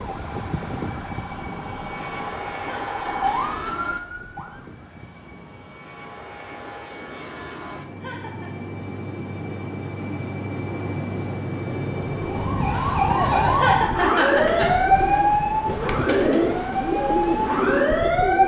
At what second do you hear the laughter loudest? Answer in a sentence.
The loudest moment of the laughter is at 14 seconds.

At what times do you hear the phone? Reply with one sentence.
You can't hear the phone here.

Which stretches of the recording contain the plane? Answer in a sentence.
You can hear the plane from 0.0 to 12.8 s.